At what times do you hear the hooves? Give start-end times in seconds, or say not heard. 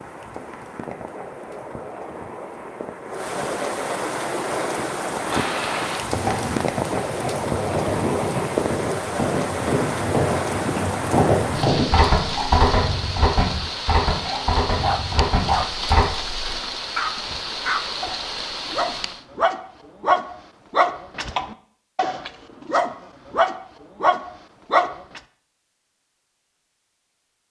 5.2-16.1.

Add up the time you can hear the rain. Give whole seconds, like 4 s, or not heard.
19 s.